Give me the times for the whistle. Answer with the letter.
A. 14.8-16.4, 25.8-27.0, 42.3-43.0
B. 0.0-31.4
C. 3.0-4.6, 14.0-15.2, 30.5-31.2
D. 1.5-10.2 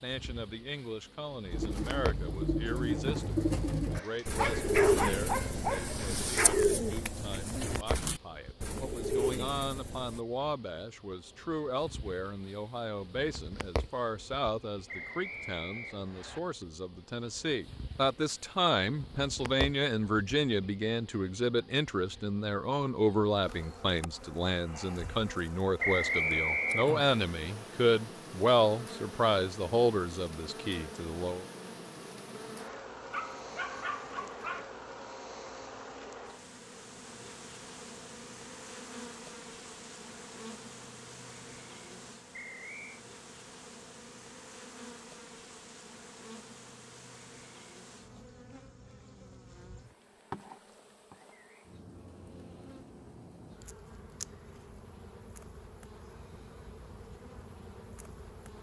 A.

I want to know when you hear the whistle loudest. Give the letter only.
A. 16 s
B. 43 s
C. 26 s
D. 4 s
C.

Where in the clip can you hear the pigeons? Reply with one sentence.
You can hear the pigeons from 1.5 to 10.2 s.